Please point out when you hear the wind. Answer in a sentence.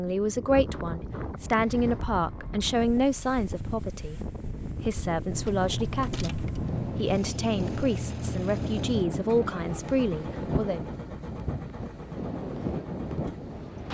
The wind can be heard from 0.0 to 13.9 s.